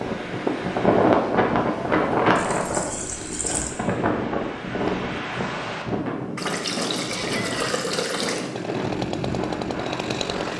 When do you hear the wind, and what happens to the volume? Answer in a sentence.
You can hear the wind from 0.0 to 10.5 s, getting quieter.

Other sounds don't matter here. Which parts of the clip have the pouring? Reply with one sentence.
The pouring can be heard from 2.4 to 3.7 s and from 6.3 to 8.5 s.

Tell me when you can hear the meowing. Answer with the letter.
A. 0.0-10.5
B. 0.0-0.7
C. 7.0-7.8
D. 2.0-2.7
C.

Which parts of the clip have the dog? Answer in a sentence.
You can't hear the dog here.